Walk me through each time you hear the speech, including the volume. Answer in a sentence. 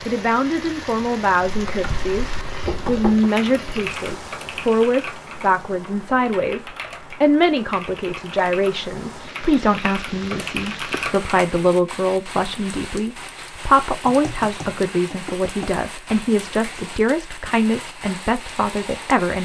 You can hear the speech from 0.0 to 19.4 s, at a steady volume.